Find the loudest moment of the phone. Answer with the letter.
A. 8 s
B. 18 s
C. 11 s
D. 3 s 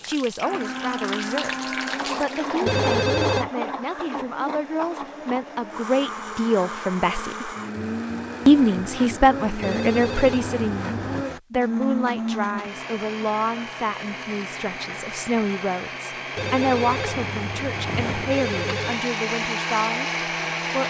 D.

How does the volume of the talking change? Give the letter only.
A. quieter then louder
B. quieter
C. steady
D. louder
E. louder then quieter
E.